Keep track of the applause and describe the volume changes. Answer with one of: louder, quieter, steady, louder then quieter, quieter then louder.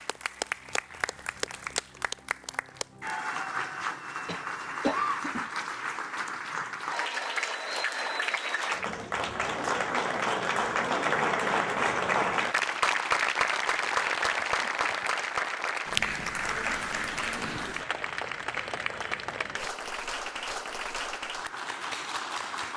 louder then quieter.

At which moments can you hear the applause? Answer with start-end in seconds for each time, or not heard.
0.0-22.7.